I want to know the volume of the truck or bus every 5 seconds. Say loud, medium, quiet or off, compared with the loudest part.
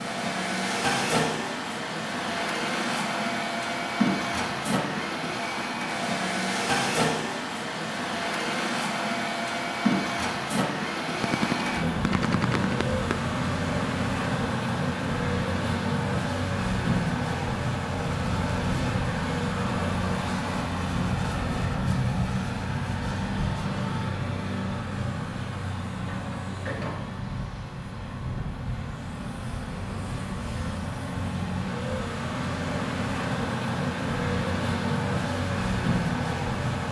loud, loud, loud, loud, loud, medium, loud, loud.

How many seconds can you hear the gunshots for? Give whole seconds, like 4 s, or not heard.
2 s.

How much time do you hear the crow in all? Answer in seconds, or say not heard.
not heard.